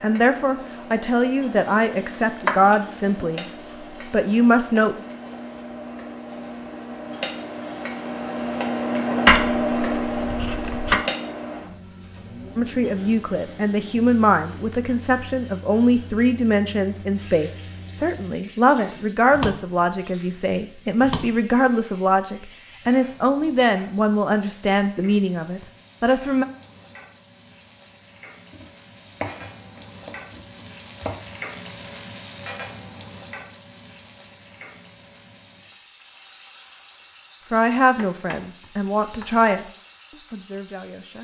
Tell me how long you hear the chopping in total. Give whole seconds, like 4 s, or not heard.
8 s.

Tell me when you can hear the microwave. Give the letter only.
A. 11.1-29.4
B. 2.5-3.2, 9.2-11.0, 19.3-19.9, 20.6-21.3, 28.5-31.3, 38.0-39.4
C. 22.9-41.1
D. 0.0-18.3
D.